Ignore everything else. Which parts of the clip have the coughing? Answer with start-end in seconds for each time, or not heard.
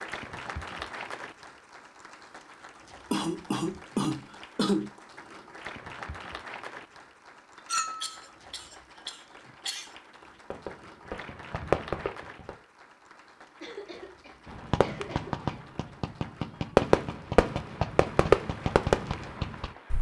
3.1-4.9, 8.0-9.9, 13.6-15.7.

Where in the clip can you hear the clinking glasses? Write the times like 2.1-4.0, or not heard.
7.7-8.2.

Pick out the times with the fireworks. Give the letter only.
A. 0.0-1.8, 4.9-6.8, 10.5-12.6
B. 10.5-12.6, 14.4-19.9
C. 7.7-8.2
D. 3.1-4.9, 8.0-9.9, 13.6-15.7
B.